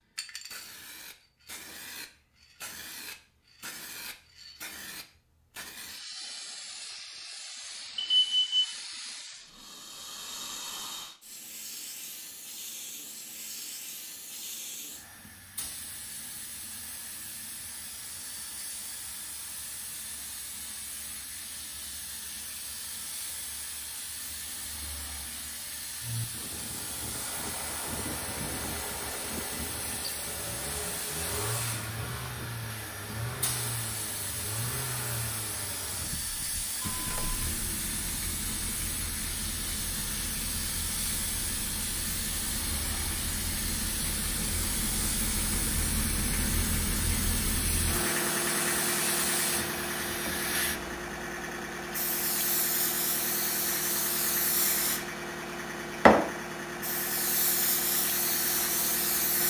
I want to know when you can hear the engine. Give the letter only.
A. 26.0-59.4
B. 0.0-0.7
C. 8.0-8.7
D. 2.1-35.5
A.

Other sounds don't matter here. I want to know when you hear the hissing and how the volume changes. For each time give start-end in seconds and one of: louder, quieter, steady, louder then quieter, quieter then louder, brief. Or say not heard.
0.0-59.4 louder.